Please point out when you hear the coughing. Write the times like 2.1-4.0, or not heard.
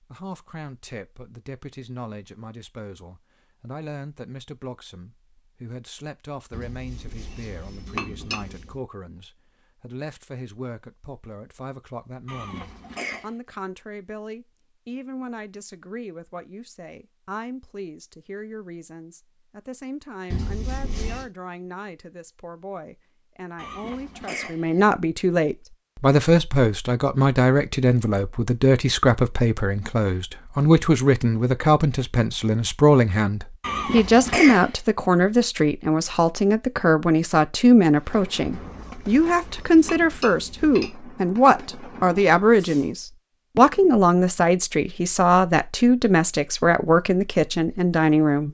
12.2-13.3, 23.6-24.9, 33.6-34.8.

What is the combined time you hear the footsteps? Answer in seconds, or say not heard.
not heard.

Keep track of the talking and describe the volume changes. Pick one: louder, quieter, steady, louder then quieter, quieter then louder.
louder.